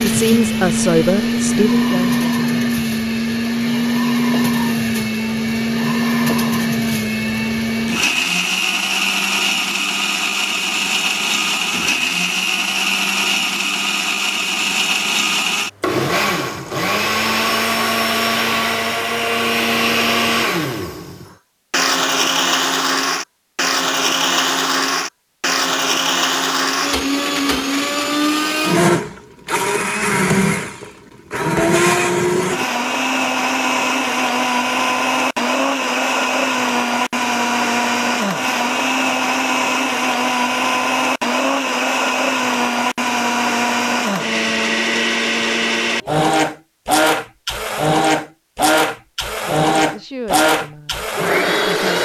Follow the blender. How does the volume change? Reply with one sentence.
The loudness of the blender stays about the same.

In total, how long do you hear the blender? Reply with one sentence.
The blender can be heard for 52 seconds in total.